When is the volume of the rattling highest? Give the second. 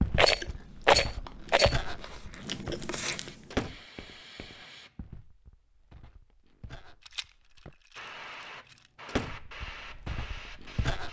1 s.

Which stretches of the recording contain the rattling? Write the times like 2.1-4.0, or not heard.
0.1-1.8, 7.0-8.9.